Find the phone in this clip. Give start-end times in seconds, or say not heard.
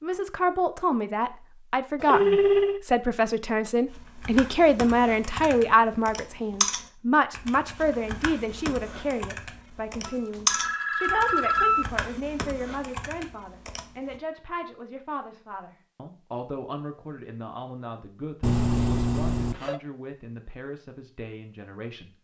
2.0-2.8, 10.1-11.8, 18.4-19.8.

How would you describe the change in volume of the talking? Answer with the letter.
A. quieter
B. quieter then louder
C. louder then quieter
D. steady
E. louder
A.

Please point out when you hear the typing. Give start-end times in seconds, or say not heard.
3.9-14.2.